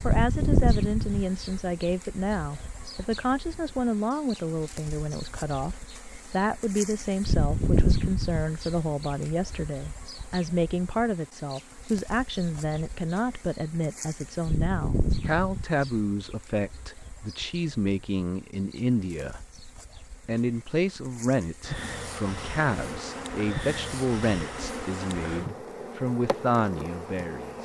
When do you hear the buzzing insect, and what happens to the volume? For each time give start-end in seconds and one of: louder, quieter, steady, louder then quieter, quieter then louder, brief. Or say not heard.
0.0-27.6 quieter then louder.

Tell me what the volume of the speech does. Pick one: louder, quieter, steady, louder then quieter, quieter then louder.
steady.